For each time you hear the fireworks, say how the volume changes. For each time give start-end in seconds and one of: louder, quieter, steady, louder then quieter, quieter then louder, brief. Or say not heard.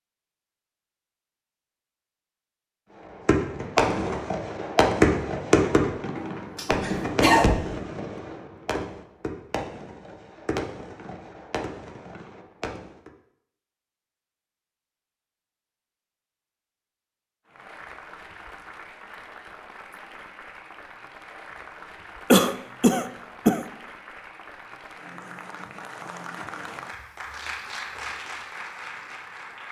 3.2-13.1 quieter.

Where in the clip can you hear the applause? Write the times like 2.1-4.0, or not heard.
17.4-29.6.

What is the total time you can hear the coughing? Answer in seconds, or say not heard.
3 s.